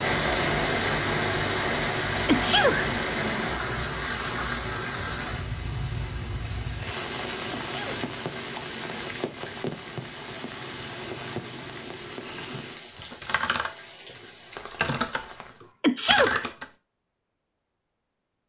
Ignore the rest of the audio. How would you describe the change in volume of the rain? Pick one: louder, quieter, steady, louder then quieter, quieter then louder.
quieter.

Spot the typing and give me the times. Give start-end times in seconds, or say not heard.
12.2-16.6.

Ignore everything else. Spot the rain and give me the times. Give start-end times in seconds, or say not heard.
0.0-15.6.